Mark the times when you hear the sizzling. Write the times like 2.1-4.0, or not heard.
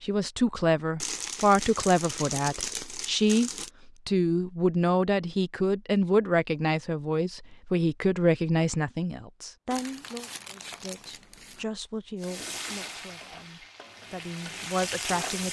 12.2-15.4.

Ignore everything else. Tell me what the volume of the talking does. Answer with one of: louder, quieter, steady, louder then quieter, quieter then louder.
quieter.